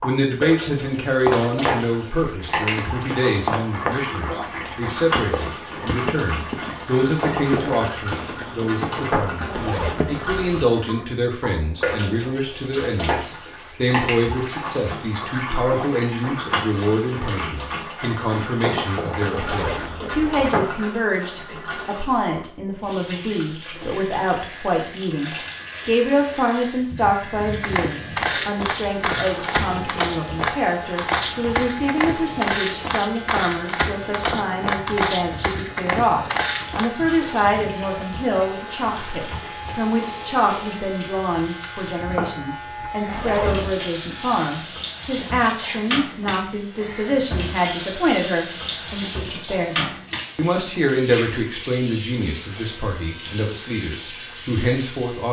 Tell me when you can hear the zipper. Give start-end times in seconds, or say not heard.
9.4-10.7, 19.3-20.5, 43.0-43.8.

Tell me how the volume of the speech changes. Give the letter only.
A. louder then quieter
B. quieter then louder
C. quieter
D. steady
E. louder
D.